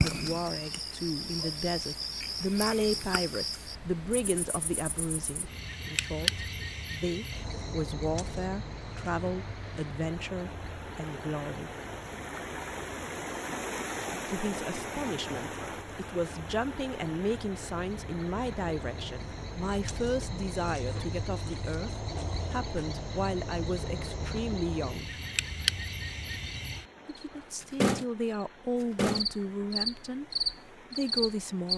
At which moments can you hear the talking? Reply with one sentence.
The talking can be heard from 0.0 to 11.7 s, from 14.2 to 25.1 s, from 27.1 to 30.2 s and from 30.9 to 31.7 s.